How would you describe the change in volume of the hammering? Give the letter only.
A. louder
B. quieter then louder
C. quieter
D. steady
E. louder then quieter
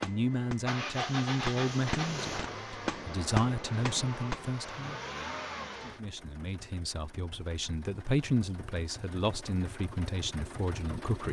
A.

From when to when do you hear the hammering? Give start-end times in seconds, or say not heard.
0.0-4.5.